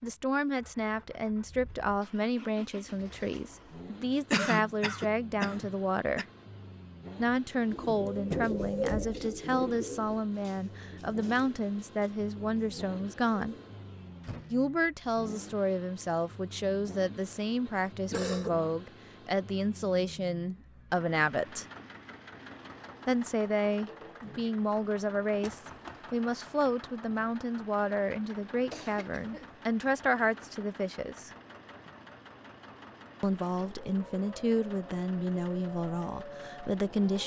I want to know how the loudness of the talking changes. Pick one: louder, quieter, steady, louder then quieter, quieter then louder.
steady.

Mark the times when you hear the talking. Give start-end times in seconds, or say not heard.
0.0-6.2, 7.2-13.6, 14.5-21.6, 23.1-31.4, 33.2-37.2.